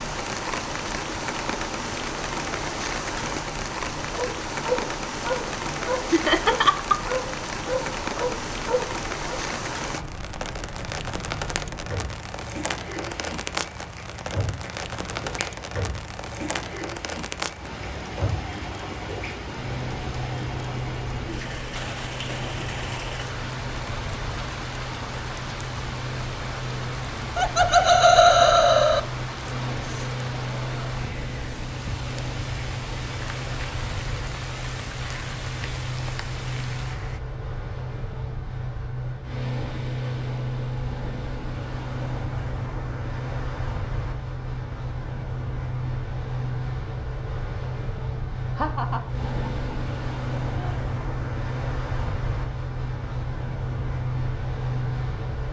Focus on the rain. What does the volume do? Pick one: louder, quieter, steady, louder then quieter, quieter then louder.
quieter.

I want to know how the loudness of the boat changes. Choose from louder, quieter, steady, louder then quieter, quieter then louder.
louder.